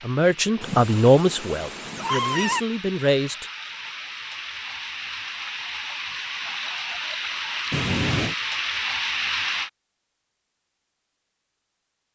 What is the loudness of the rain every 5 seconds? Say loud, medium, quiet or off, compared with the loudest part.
medium, loud, off.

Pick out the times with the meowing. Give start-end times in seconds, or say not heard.
0.6-2.6, 7.7-8.3.